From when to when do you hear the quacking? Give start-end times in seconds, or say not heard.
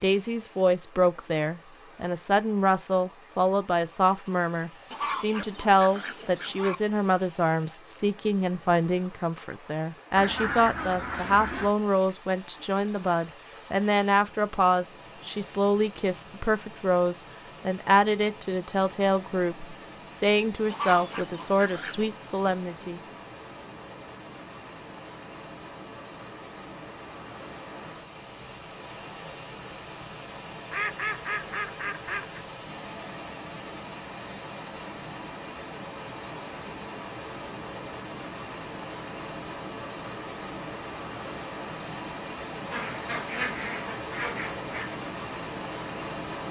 4.9-6.8, 10.2-11.8, 20.6-22.1, 30.7-32.5, 42.7-45.0.